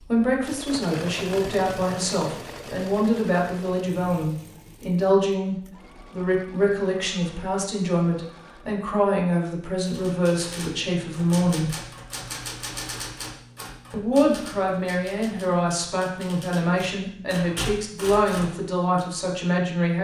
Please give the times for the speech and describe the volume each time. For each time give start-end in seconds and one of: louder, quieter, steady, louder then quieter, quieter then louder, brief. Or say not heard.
0.0-11.8 steady
13.9-19.9 steady.